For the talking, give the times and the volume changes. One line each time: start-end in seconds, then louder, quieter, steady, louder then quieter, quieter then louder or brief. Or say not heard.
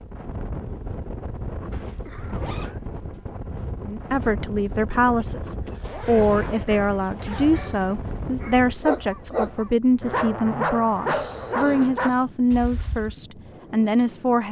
3.9-14.4 steady.